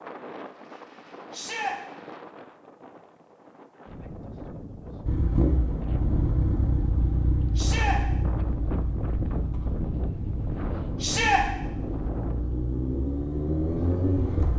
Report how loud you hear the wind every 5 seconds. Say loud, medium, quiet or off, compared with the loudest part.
medium, loud, loud.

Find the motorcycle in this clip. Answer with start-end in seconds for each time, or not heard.
5.0-14.5.